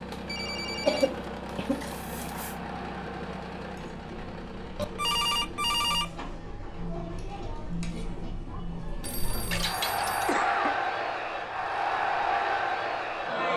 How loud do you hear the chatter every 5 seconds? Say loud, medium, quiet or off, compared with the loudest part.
quiet, medium, loud.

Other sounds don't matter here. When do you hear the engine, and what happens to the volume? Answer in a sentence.
The engine can be heard from 0.0 to 9.6 s, getting quieter.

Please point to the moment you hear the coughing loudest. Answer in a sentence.
The volume of the coughing peaks at 1 second.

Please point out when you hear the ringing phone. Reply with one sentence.
The ringing phone can be heard from 0.1 to 2.5 s, from 4.8 to 6.1 s and from 9.0 to 10.3 s.